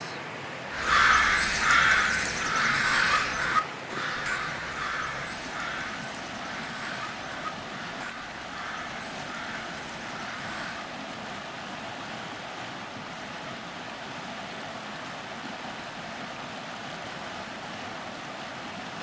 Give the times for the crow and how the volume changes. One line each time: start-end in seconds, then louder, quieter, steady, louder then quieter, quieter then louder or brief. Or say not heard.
0.7-10.9 quieter.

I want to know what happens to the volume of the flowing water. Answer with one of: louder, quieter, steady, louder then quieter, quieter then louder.
steady.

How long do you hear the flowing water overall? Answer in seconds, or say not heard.
19 s.